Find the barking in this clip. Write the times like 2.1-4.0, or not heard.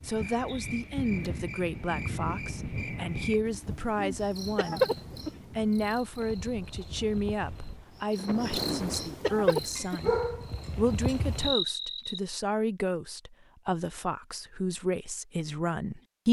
9.8-11.2.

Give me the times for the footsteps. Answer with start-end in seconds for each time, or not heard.
not heard.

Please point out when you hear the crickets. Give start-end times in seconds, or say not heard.
0.0-12.2.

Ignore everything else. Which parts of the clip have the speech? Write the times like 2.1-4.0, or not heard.
0.1-4.9, 5.5-10.2, 10.8-16.2.